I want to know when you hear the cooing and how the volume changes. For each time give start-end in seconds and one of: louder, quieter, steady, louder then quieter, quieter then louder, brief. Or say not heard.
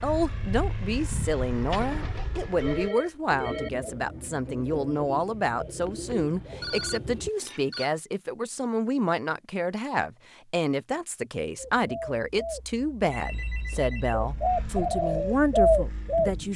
1.7-7.6 louder
11.6-16.4 quieter then louder.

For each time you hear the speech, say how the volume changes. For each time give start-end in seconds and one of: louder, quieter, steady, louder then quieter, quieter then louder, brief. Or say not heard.
0.0-16.5 steady.